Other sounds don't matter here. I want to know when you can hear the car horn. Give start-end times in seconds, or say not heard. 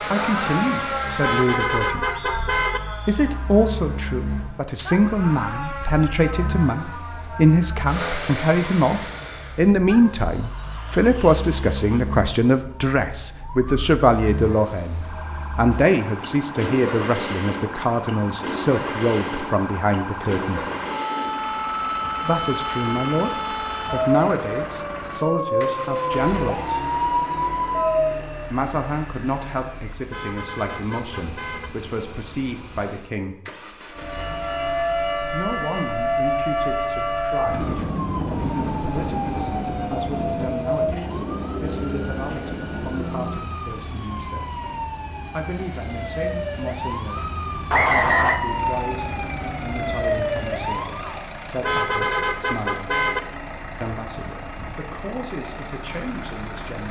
1.2-2.8, 30.1-31.7, 51.6-53.2.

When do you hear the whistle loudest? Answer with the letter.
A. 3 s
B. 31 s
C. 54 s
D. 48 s
D.